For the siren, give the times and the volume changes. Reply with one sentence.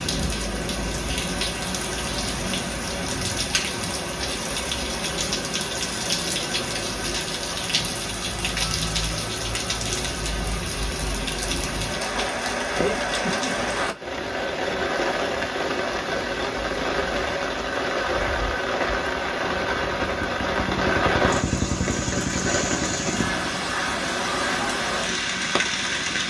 You can't hear the siren here.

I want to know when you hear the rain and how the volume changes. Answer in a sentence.
You can hear the rain from 0.0 to 26.2 s, at a steady volume.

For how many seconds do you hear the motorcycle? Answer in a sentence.
The motorcycle can be heard for 7 seconds in total.